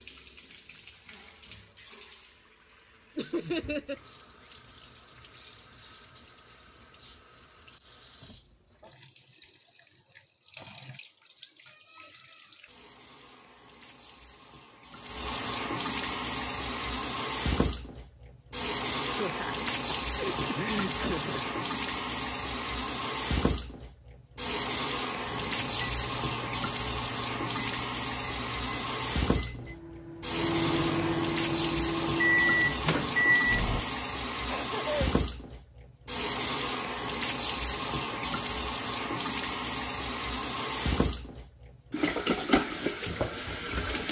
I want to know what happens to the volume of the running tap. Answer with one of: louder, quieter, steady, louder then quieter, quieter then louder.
louder.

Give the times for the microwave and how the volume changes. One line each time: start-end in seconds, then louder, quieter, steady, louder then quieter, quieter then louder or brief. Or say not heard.
25.2-33.9 louder.